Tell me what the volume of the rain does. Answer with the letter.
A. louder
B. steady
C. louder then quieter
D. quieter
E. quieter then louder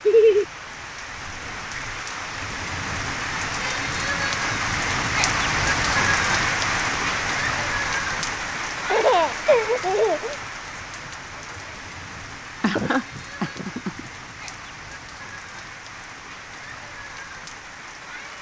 C.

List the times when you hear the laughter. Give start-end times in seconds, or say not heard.
0.1-0.5, 8.9-10.3, 12.6-14.0.